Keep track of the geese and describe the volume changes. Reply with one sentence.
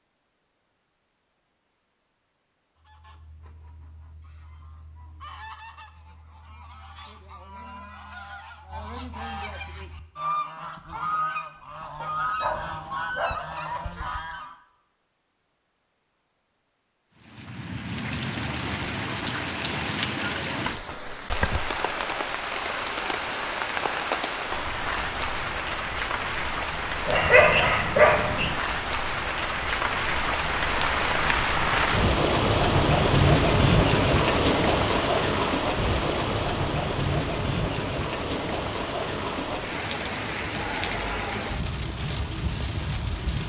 The loudness of the geese goes up.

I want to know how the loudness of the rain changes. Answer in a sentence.
The loudness of the rain goes up, then down.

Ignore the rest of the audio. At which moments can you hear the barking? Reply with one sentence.
The barking can be heard from 12.0 to 13.4 s and from 27.1 to 28.6 s.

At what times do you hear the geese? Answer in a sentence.
The geese can be heard from 2.8 to 14.6 s.